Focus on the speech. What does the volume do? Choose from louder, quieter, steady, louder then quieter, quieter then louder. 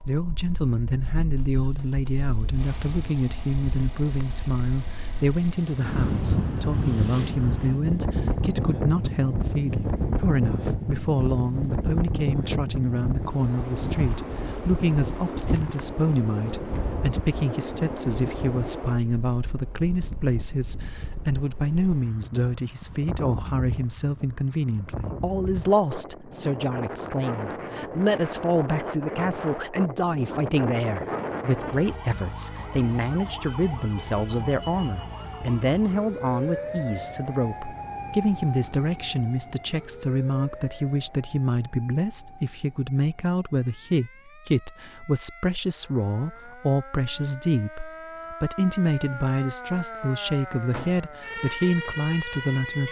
steady.